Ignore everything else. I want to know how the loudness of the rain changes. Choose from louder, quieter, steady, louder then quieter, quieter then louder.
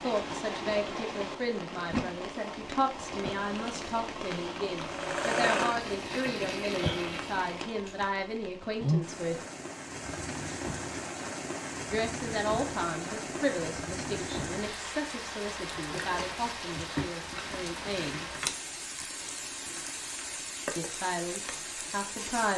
steady.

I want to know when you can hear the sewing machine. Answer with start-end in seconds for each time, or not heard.
4.8-8.2.